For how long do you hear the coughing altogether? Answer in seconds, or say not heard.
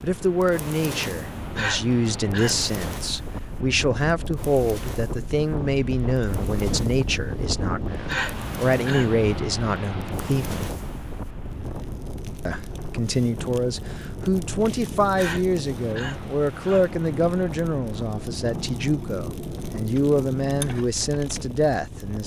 4 s.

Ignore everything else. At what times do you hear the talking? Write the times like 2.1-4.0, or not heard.
0.0-10.7, 12.4-22.2.